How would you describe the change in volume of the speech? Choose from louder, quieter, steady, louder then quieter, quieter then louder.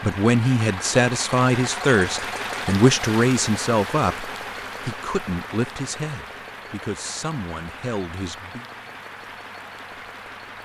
quieter.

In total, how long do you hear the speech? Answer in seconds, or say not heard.
9 s.